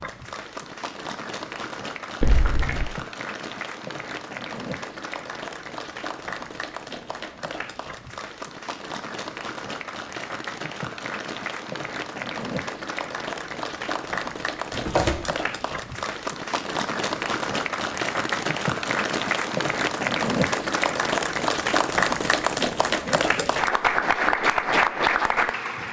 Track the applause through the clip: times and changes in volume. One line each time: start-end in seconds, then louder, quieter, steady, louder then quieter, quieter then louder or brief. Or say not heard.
0.0-25.8 louder.